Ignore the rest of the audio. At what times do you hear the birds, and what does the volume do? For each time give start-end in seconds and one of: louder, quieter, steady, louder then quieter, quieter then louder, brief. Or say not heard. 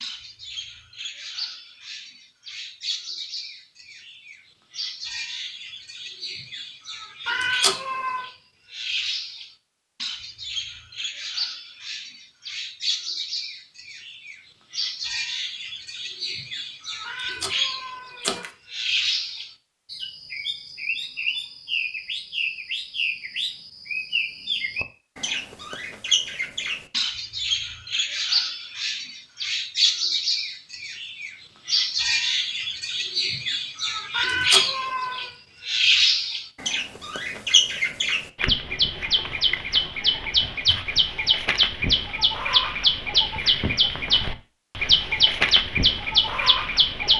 0.0-47.1 louder.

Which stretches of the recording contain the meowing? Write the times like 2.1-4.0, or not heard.
7.2-8.3, 17.1-18.5, 34.1-35.3.